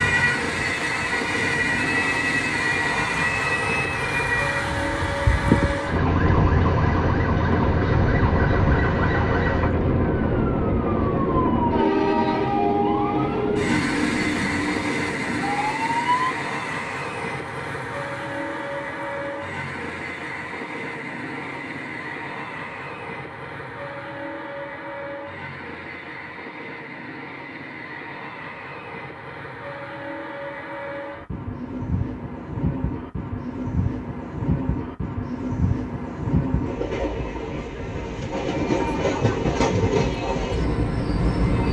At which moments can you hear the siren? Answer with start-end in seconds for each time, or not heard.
0.0-16.3.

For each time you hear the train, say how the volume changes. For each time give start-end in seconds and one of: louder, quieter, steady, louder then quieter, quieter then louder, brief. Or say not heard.
0.0-41.6 quieter then louder.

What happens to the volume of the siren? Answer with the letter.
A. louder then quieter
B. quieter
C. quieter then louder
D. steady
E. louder
D.